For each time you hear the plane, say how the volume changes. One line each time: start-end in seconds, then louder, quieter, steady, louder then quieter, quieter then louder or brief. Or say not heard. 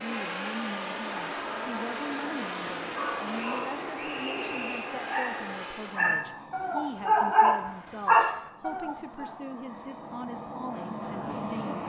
0.0-11.8 quieter then louder.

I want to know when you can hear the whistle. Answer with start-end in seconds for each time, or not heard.
3.4-5.0.